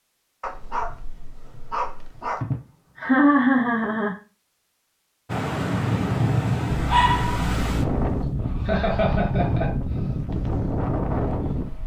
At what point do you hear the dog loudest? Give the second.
7 s.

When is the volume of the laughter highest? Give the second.
3 s.